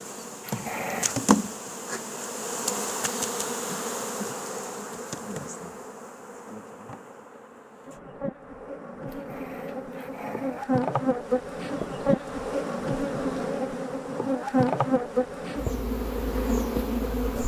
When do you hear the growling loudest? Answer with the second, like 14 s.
1 s.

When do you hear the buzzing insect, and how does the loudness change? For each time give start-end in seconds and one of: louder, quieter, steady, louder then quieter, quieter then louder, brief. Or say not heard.
0.0-17.4 quieter then louder.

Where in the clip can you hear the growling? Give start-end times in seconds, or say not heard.
0.4-1.3, 9.1-10.7.